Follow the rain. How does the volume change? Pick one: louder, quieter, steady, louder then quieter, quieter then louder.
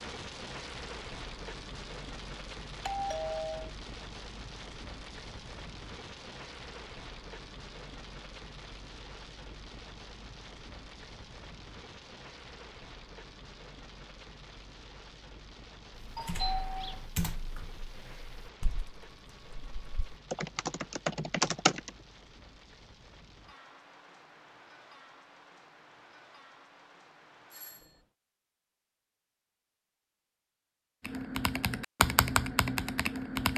quieter.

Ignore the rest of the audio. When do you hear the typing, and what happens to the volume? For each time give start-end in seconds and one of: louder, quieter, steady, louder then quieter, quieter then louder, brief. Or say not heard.
16.1-21.9 quieter then louder
31.1-33.5 brief.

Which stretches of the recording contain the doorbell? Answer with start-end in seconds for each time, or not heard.
2.8-3.7, 16.1-17.1, 27.5-28.0.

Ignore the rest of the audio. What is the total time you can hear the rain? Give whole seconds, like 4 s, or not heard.
28 s.